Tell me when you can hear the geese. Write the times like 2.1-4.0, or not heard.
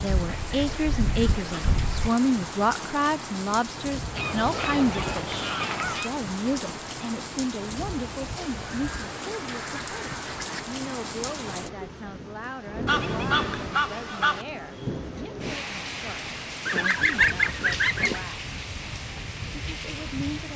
0.1-2.1, 4.2-6.1, 8.6-10.6, 12.8-14.4, 16.6-18.2.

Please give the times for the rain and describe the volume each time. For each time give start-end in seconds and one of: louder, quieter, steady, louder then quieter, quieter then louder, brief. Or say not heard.
0.0-20.5 steady.